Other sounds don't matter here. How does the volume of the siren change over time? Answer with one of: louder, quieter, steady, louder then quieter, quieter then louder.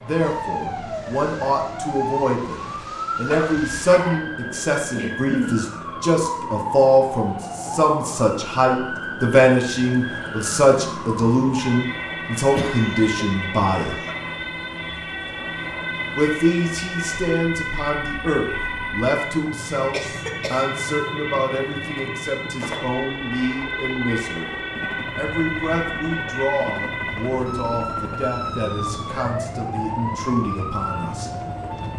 steady.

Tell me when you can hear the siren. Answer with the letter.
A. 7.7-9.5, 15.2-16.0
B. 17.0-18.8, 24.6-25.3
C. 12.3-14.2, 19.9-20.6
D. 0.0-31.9
D.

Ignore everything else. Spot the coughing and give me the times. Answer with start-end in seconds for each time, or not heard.
12.3-14.2, 19.9-20.6.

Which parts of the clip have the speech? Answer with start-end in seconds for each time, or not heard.
0.0-13.9, 16.1-31.3.